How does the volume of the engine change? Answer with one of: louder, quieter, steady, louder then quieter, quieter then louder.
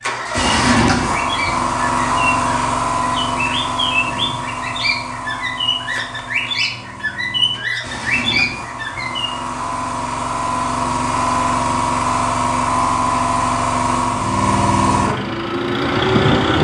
quieter then louder.